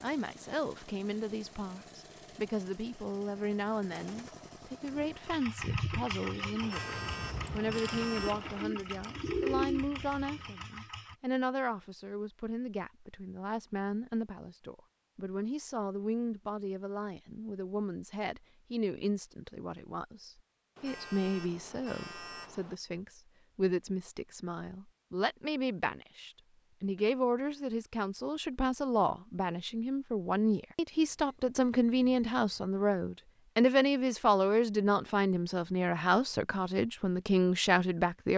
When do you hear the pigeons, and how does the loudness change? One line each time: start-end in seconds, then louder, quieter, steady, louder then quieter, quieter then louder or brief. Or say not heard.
4.9-10.5 quieter then louder.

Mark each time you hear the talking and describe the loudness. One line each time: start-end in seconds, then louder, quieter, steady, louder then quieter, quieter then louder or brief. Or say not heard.
0.0-38.3 louder.